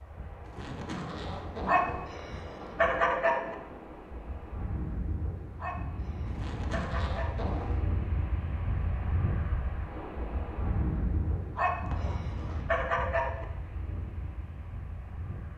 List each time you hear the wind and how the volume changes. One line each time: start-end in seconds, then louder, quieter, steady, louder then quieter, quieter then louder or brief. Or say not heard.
0.0-15.5 louder then quieter.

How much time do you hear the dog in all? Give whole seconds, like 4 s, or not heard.
6 s.